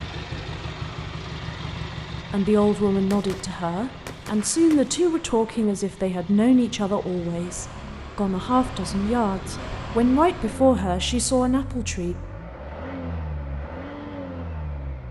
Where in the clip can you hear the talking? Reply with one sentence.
The talking can be heard from 2.3 to 12.2 s.